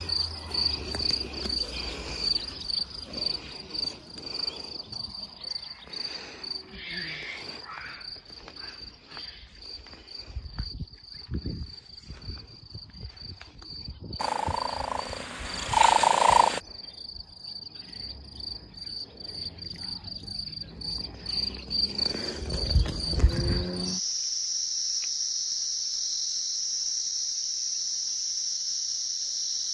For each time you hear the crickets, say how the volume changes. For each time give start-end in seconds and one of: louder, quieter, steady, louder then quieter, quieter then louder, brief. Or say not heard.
0.0-29.6 quieter then louder.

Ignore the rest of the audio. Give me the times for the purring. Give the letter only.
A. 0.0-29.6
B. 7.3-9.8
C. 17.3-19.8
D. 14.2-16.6
D.